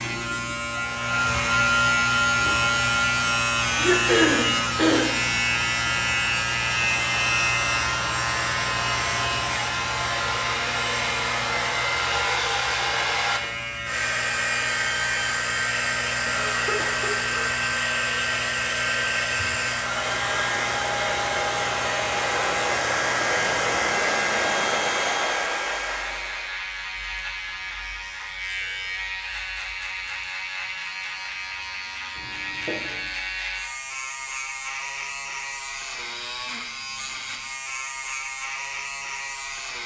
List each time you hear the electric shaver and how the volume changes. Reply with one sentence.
You can hear the electric shaver from 0.0 to 39.8 s, getting quieter.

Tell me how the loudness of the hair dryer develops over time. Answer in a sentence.
The volume of the hair dryer goes up.